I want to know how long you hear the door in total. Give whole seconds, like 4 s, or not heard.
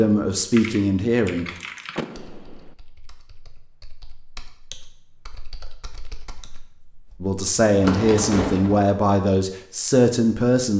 2 s.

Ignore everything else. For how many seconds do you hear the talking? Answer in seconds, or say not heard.
5 s.